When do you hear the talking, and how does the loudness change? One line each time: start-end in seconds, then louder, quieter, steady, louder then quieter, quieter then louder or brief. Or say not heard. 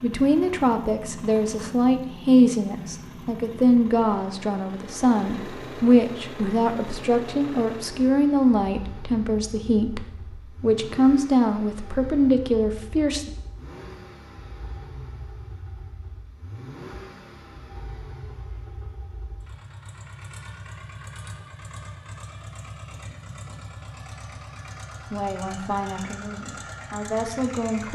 0.0-13.3 steady
25.1-27.9 brief.